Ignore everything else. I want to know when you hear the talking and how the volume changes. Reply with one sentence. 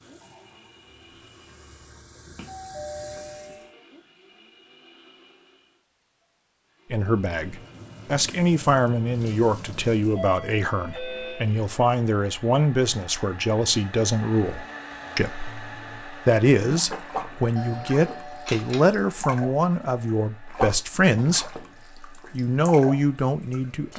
The talking can be heard from 6.9 to 23.9 s, at a steady volume.